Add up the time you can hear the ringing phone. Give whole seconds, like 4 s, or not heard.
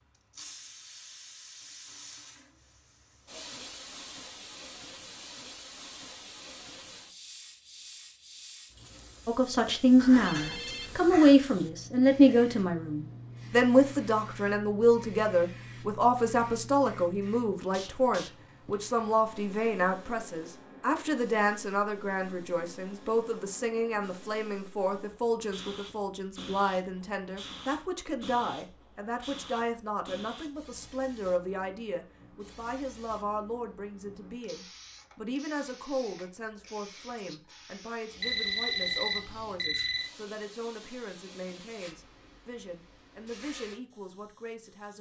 3 s.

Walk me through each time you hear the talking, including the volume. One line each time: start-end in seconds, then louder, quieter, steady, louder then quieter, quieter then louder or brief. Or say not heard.
9.2-44.9 quieter.